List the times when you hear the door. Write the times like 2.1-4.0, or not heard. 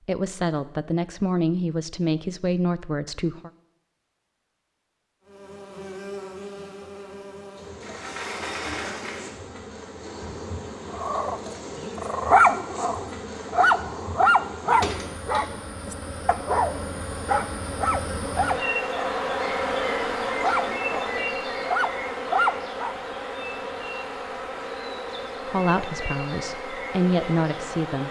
7.8-9.4, 14.6-15.6.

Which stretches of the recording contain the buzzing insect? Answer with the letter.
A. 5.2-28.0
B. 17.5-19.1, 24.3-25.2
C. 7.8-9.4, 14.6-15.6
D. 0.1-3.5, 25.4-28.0
A.